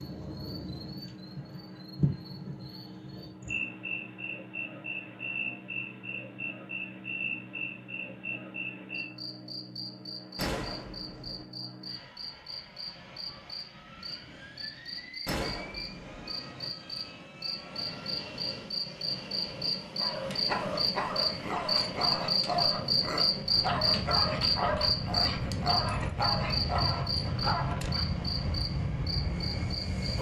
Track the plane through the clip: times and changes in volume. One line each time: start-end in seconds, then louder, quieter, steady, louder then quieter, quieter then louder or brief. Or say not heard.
0.0-30.1 louder.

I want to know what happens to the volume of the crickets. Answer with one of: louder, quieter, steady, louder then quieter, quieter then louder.
louder.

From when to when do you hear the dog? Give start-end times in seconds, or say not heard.
19.9-28.1.